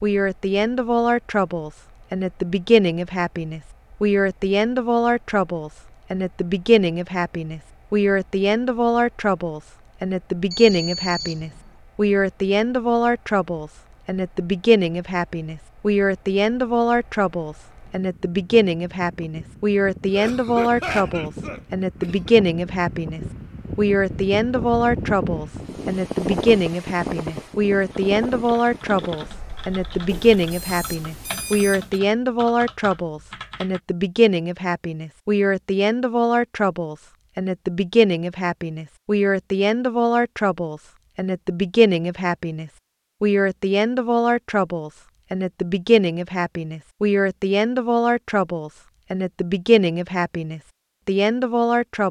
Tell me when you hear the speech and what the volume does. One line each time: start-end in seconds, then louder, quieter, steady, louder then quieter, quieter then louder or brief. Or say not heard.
0.0-52.0 steady.